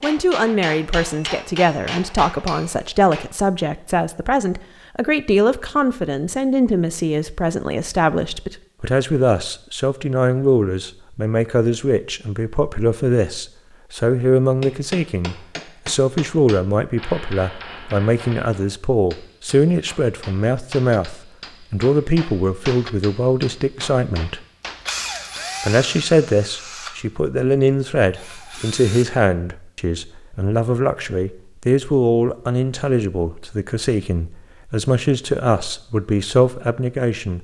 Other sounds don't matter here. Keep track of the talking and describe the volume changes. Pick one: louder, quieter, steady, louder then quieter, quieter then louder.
steady.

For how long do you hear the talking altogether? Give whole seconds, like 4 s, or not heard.
36 s.